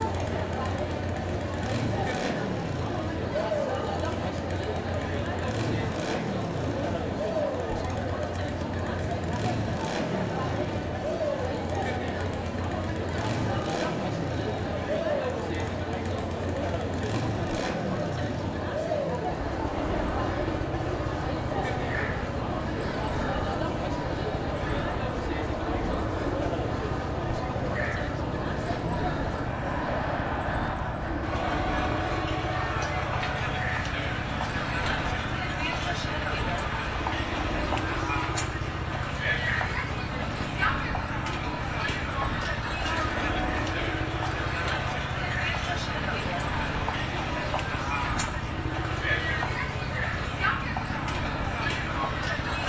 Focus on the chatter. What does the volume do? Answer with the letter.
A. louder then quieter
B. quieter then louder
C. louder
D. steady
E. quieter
D.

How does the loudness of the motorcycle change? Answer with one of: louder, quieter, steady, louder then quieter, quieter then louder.
steady.